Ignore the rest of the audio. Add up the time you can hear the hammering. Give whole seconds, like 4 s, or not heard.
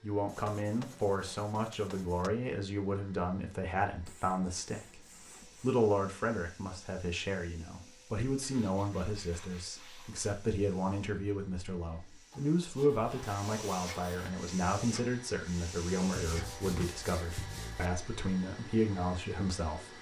not heard.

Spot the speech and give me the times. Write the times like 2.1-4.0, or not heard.
0.0-5.0, 5.6-19.9.